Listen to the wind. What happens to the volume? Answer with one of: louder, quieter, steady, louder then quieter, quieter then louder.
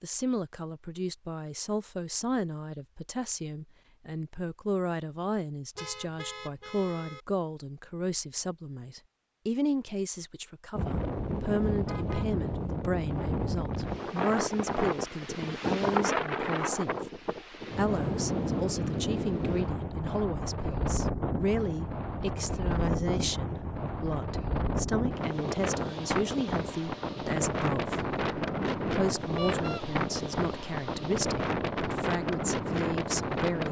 steady.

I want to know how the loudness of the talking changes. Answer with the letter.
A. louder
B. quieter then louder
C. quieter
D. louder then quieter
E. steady
E.